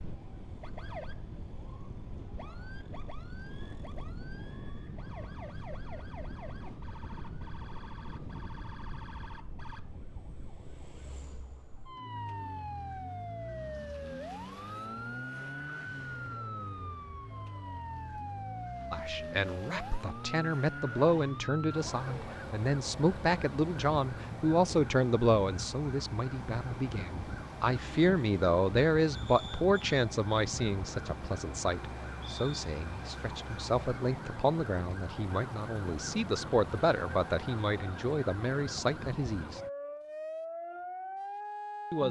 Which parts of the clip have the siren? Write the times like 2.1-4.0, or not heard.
0.0-42.0.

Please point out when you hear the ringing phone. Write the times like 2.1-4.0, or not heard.
not heard.